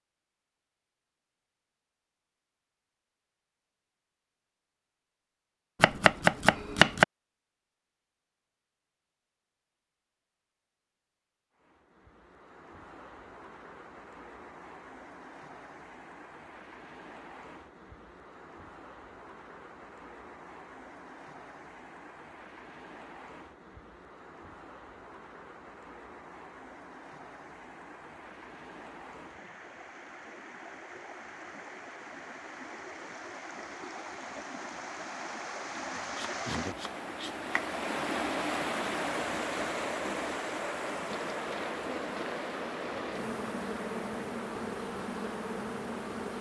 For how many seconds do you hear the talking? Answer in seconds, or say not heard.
not heard.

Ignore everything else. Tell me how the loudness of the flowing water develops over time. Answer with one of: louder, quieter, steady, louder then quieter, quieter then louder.
louder.